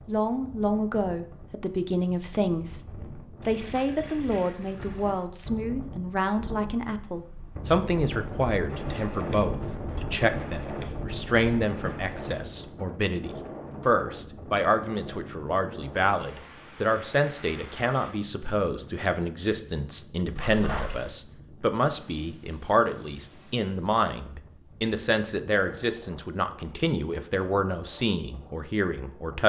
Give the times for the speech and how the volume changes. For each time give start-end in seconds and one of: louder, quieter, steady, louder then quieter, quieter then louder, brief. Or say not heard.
0.1-29.4 steady.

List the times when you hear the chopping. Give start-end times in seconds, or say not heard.
not heard.